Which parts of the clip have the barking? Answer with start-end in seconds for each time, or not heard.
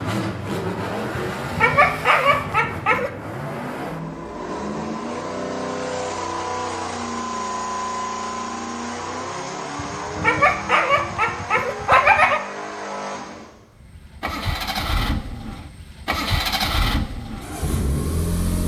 1.4-3.1, 9.8-12.4.